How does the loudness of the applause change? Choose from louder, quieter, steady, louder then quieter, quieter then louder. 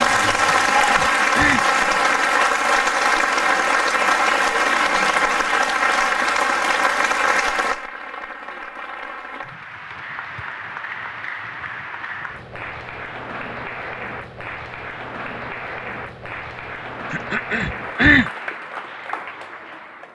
quieter.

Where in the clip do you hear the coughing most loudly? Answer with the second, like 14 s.
18 s.